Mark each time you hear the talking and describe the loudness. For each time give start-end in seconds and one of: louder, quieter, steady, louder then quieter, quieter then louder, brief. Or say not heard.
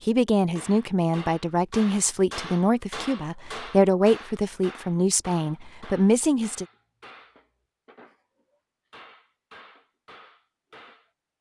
0.1-6.7 steady.